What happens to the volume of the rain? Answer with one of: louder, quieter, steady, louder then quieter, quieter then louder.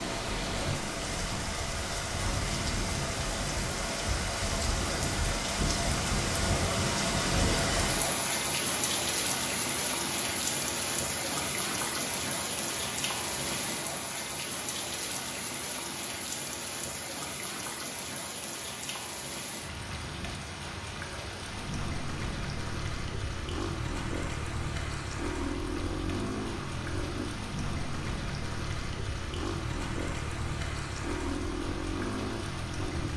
quieter.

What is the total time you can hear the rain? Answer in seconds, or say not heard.
33 s.